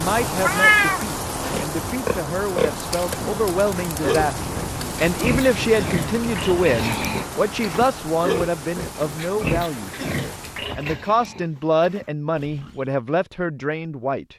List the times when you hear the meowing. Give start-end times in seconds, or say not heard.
0.3-1.6.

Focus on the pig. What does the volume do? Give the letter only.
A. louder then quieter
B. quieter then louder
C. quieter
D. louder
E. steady
C.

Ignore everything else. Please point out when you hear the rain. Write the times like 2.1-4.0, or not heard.
0.0-10.8.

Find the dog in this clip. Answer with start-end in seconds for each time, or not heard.
not heard.